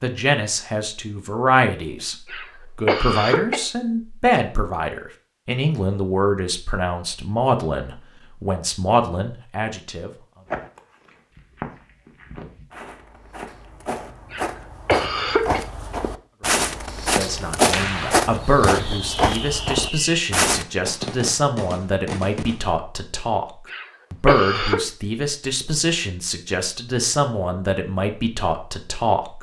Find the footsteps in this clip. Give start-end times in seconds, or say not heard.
10.4-20.6.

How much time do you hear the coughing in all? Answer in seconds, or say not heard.
4 s.